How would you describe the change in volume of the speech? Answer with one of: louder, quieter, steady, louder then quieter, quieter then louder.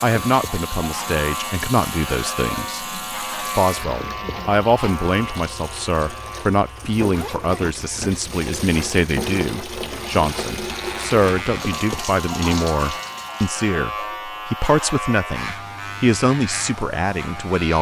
steady.